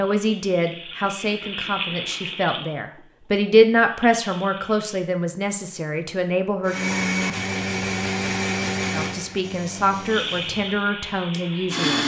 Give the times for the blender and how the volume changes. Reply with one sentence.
You can hear the blender from 6.7 to 12.0 s, getting quieter.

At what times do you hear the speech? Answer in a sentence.
You can hear the speech from 0.0 to 6.8 s and from 8.9 to 12.0 s.